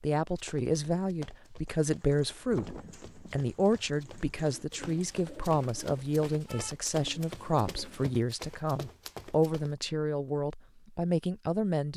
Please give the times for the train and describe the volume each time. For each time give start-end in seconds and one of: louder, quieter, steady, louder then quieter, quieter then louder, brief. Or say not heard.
not heard.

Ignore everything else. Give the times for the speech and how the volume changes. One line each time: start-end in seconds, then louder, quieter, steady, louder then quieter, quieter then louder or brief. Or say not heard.
0.0-11.9 steady.